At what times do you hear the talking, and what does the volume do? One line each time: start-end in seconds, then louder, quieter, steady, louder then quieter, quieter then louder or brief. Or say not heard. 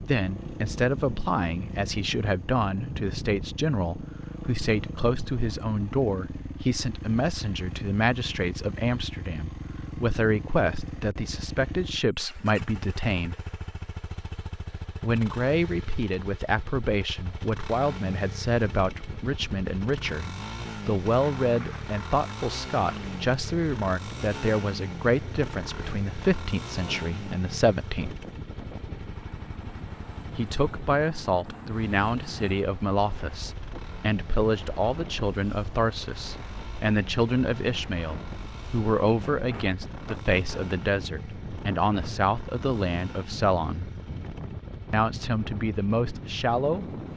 0.0-13.3 steady
15.0-28.1 steady
30.3-43.9 steady
44.9-47.0 brief.